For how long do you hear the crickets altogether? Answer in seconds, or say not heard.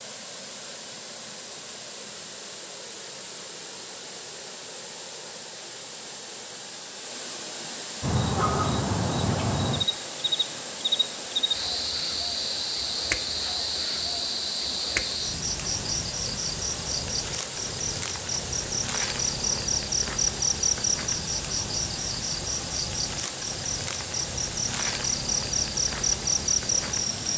19 s.